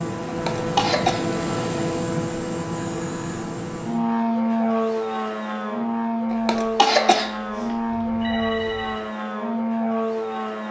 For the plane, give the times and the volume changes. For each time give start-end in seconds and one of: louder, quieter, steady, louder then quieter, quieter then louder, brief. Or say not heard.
0.0-10.6 steady.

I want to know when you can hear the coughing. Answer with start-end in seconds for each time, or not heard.
0.2-1.2, 6.3-7.8.